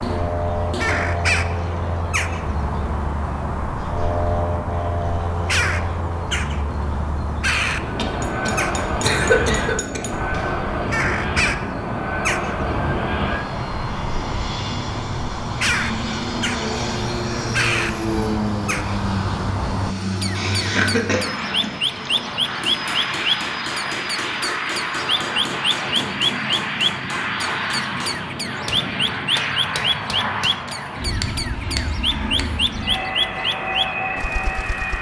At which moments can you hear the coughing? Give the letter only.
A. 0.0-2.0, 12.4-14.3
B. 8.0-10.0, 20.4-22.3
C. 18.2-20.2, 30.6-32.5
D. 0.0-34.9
B.